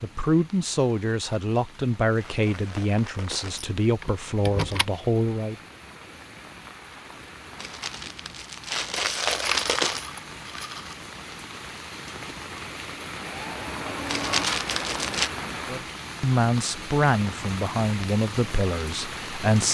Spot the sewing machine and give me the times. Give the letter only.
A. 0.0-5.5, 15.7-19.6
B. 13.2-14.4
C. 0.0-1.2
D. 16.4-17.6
B.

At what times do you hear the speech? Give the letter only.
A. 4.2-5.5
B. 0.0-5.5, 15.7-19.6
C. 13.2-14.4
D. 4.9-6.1
B.